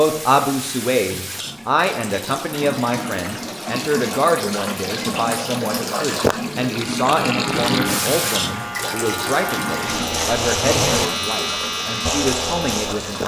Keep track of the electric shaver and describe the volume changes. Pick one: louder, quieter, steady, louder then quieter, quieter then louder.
louder.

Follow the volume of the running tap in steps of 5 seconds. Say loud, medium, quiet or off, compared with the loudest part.
medium, loud, medium.